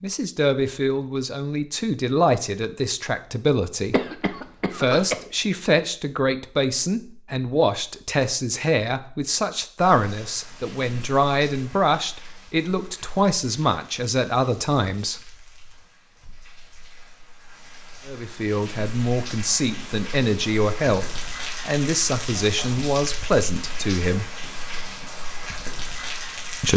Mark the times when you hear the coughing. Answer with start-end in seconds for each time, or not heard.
3.9-5.2.